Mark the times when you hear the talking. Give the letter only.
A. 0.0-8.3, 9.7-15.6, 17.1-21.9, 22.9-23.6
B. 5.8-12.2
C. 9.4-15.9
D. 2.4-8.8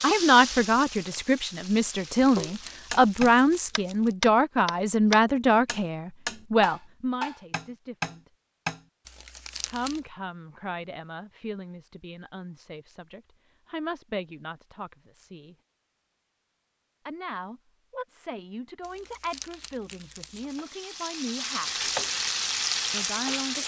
A.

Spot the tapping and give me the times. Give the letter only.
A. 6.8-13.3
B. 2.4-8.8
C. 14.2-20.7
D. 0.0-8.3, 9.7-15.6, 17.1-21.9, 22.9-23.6
B.